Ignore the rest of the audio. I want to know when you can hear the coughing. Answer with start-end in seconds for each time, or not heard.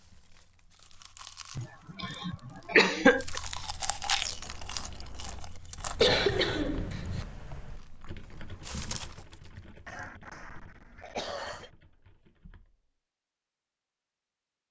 1.6-3.2, 6.0-7.2, 9.8-11.7.